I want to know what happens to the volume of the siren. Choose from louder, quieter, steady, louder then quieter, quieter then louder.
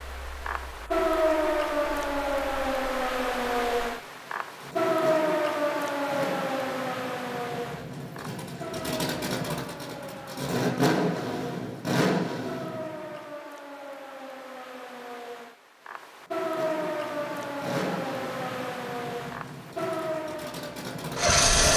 quieter then louder.